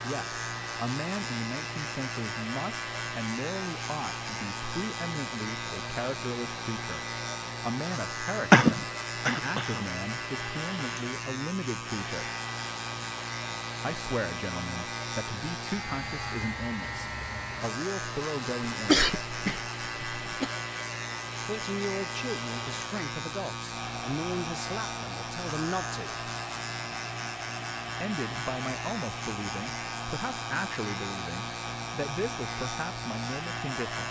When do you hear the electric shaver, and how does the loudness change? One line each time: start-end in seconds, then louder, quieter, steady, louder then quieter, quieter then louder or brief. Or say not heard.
0.0-34.0 steady.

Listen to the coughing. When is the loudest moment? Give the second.
9 s.